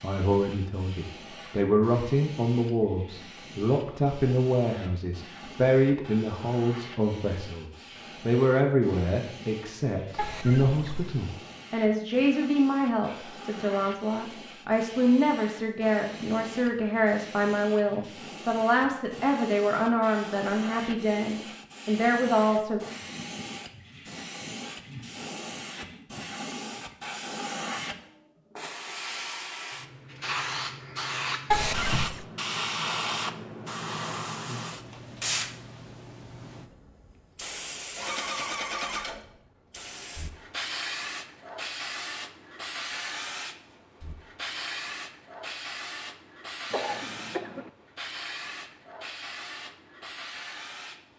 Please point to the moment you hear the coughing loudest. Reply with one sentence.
The loudest moment of the coughing is at 32 seconds.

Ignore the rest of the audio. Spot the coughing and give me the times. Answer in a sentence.
The coughing can be heard from 10.2 to 11.2 s, from 31.5 to 32.2 s and from 46.7 to 47.7 s.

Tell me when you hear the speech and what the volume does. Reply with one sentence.
The speech can be heard from 0.0 to 22.8 s, at a steady volume.